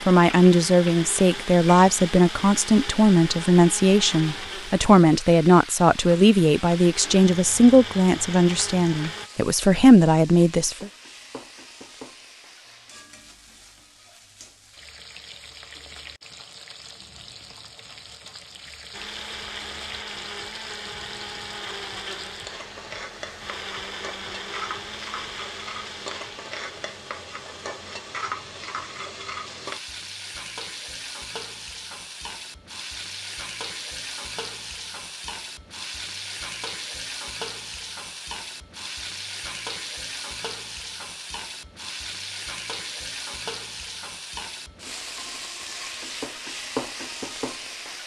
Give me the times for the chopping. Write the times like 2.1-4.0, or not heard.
not heard.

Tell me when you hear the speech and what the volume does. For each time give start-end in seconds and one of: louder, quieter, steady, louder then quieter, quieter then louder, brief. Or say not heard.
0.0-10.9 steady.